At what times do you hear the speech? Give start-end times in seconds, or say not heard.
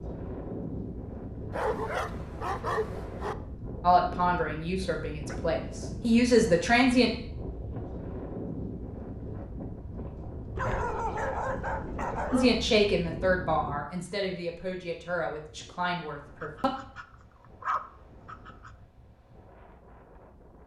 3.8-7.2, 12.3-16.7.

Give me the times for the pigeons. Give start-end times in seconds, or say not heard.
not heard.